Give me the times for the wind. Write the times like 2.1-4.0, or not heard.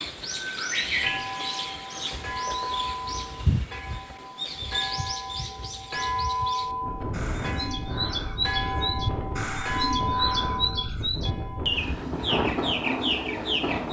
6.6-13.8.